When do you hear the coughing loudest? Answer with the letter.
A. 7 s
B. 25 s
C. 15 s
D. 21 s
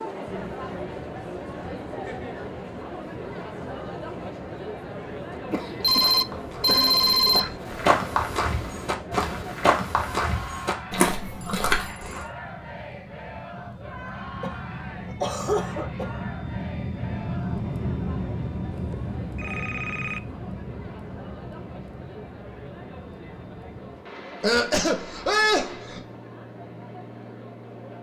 B.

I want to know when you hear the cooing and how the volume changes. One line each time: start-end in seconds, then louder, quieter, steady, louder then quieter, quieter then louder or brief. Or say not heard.
not heard.